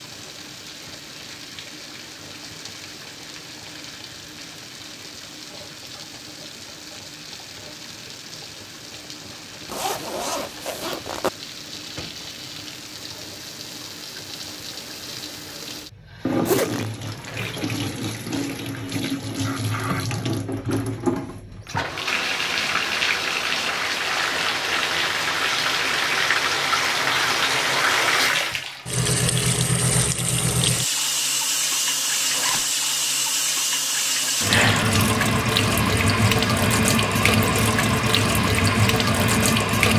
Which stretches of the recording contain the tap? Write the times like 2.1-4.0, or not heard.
0.0-39.9.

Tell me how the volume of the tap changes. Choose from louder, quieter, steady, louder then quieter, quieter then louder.
louder.